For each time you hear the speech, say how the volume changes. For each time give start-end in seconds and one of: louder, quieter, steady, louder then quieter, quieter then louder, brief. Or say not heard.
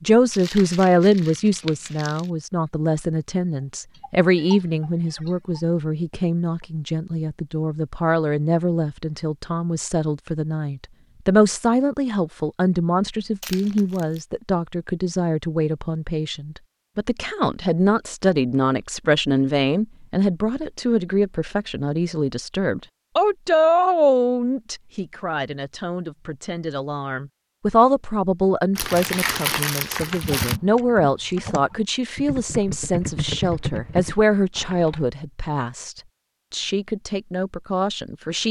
0.0-38.4 steady.